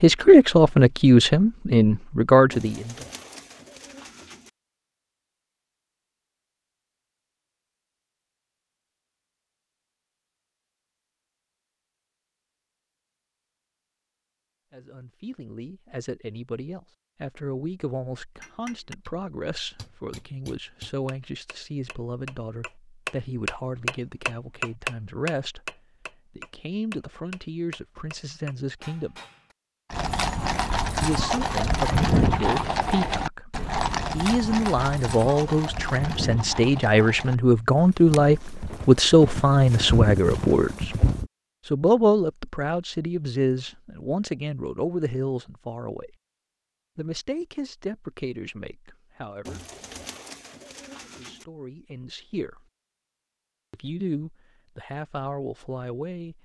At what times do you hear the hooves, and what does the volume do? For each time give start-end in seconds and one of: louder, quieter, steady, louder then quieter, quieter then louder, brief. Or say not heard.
29.9-41.3 quieter then louder.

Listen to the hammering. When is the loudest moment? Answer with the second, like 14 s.
25 s.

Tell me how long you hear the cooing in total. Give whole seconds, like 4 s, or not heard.
4 s.